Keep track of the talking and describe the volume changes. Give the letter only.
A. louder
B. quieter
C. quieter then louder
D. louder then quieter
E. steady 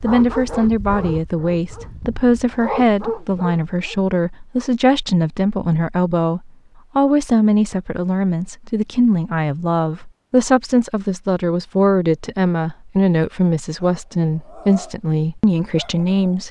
E.